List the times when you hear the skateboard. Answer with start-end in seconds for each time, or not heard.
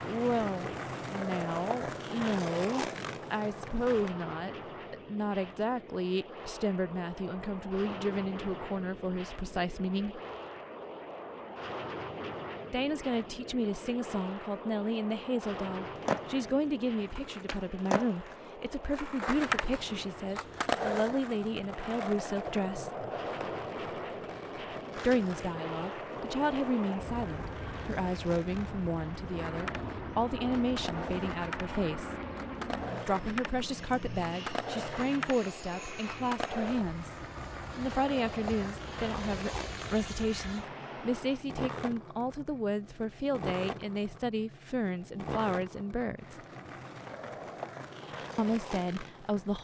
0.0-4.1, 15.9-49.5.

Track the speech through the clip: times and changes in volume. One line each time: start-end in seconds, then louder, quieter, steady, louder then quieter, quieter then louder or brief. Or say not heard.
0.0-10.2 steady
12.7-22.9 steady
24.9-32.1 steady
33.0-46.4 steady
48.4-49.5 brief.